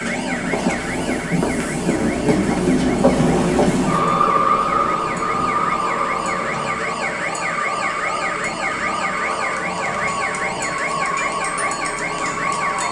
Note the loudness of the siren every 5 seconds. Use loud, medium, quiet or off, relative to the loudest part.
medium, loud, loud.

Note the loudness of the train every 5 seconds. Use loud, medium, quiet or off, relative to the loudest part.
loud, medium, medium.